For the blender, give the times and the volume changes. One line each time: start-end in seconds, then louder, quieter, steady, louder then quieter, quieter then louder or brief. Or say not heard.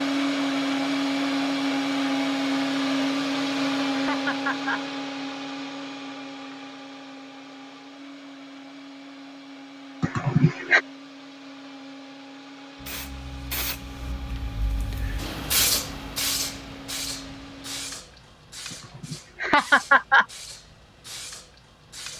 0.0-18.1 quieter.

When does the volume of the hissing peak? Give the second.
16 s.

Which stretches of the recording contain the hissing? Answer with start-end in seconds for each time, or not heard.
12.8-22.1.